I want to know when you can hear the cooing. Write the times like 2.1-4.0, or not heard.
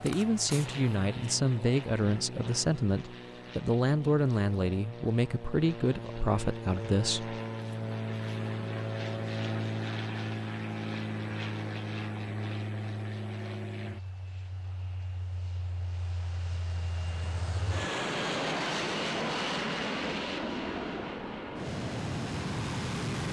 not heard.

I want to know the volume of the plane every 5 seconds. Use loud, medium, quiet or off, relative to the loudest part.
medium, loud, loud, loud, loud.